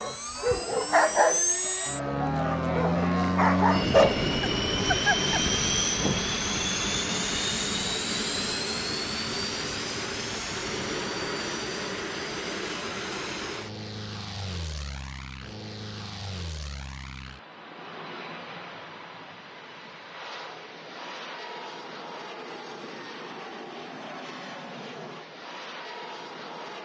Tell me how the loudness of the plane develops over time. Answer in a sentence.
The loudness of the plane goes down.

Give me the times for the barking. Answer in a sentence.
You can hear the barking from 0.0 to 5.4 s.